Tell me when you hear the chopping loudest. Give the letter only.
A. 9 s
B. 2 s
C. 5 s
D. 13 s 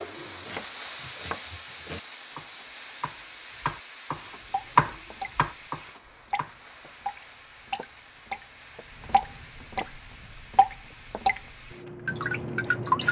C.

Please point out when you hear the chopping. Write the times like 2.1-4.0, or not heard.
0.0-6.5.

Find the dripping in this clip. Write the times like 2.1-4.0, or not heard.
4.5-5.3, 6.3-11.4, 12.1-13.0.